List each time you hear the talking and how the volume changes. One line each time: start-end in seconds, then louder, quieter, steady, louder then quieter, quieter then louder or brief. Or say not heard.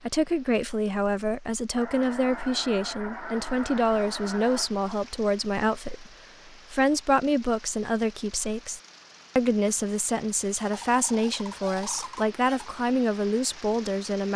0.0-14.3 steady.